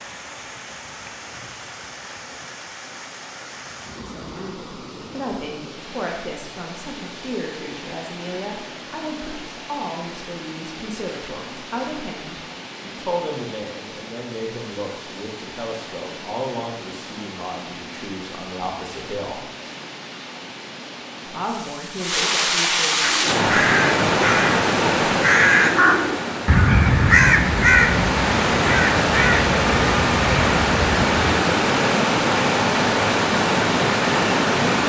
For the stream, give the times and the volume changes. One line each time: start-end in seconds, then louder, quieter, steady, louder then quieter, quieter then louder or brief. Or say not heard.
0.0-34.8 louder.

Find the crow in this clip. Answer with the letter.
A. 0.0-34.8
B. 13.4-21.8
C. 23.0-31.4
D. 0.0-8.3
C.